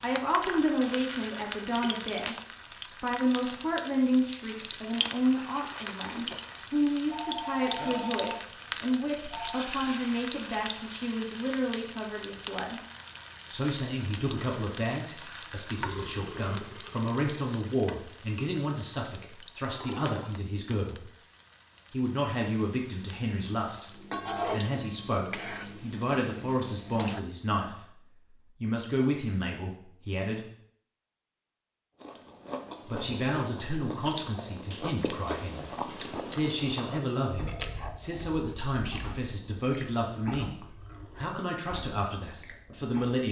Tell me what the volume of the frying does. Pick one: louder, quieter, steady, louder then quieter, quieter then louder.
quieter then louder.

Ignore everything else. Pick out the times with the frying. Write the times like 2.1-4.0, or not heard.
0.0-27.2.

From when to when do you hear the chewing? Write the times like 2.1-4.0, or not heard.
32.0-43.2.